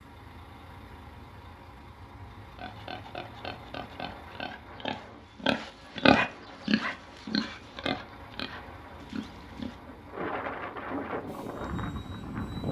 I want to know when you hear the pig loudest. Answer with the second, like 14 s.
6 s.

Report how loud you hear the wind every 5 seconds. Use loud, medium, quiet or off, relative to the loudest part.
quiet, quiet, loud.